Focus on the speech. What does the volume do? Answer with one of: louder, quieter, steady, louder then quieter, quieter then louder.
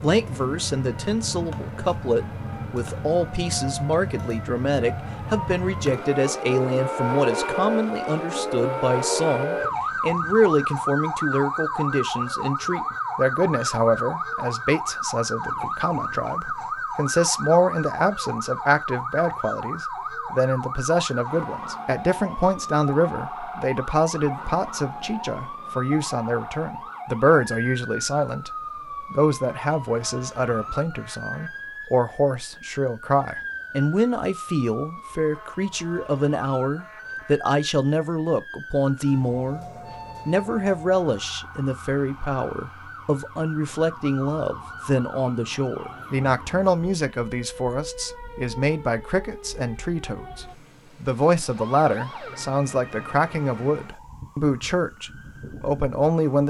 steady.